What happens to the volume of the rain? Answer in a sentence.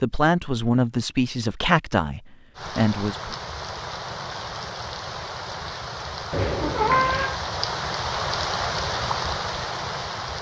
The loudness of the rain goes up.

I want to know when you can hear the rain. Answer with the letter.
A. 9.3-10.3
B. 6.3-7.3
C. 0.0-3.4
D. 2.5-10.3
D.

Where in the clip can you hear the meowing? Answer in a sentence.
The meowing can be heard from 6.3 to 7.3 s.